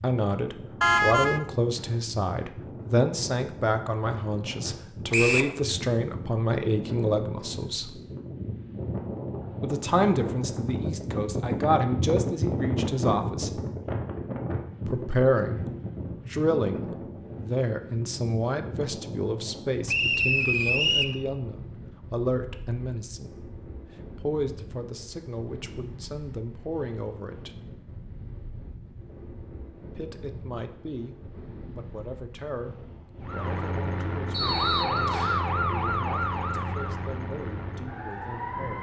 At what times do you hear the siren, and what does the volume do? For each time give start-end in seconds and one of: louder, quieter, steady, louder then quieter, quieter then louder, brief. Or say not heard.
33.2-38.7 louder then quieter.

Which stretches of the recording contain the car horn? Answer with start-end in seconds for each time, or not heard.
0.8-1.4.